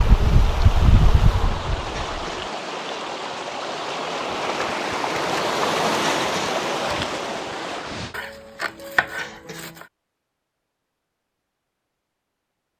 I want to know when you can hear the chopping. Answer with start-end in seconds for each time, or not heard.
8.1-9.8.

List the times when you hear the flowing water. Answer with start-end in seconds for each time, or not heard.
0.0-8.2.